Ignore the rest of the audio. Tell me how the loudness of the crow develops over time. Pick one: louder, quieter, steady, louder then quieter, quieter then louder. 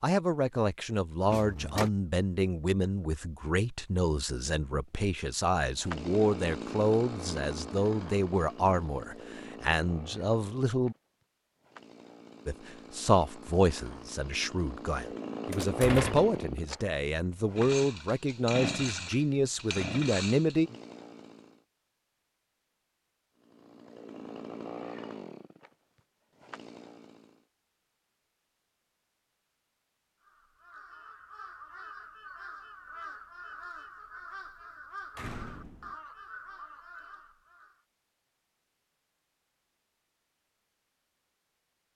steady.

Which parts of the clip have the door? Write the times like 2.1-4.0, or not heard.
1.2-1.9, 15.5-16.4, 35.1-36.0.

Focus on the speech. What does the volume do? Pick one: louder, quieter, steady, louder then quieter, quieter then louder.
steady.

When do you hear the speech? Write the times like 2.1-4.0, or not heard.
0.0-10.9, 12.4-20.7.